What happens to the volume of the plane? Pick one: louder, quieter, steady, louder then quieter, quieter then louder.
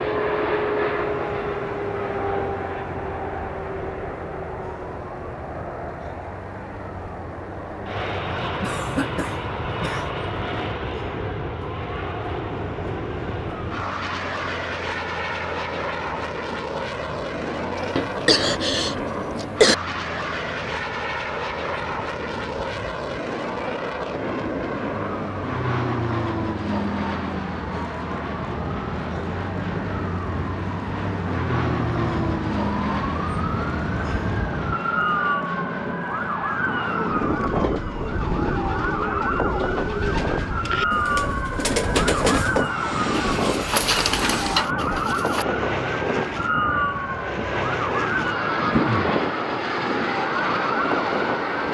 steady.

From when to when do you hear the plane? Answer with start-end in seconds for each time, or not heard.
0.0-51.6.